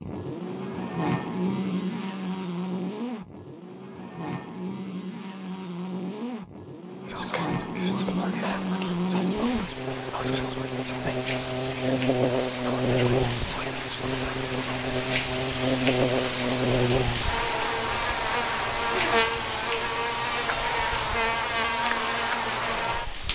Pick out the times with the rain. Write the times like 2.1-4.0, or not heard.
9.3-23.2.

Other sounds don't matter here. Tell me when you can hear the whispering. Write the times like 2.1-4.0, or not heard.
7.0-14.8.